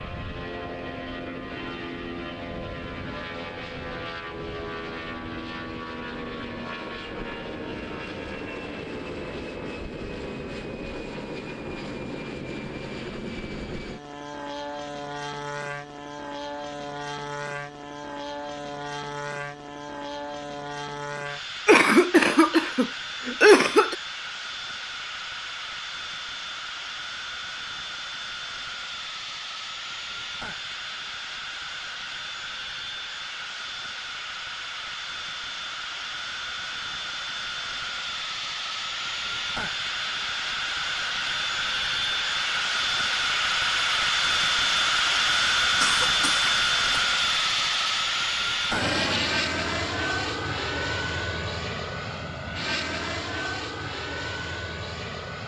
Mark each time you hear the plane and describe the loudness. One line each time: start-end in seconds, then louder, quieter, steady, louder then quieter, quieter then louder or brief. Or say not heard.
0.0-55.4 louder.